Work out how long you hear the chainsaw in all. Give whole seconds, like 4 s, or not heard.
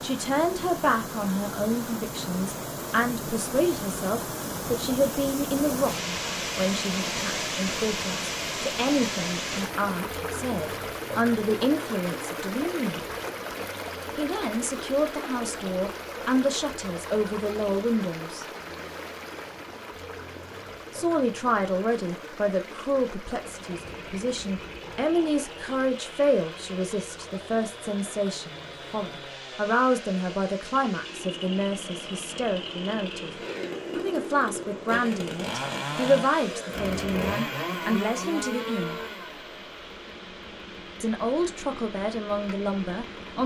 20 s.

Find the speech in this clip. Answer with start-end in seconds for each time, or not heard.
0.0-13.0, 14.2-18.4, 20.9-33.3, 34.0-39.0, 41.0-43.4.